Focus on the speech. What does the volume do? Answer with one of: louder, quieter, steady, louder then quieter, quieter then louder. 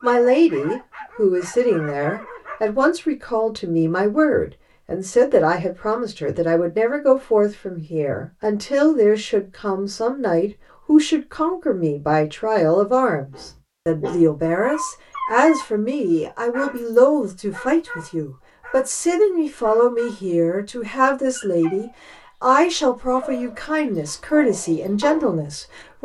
steady.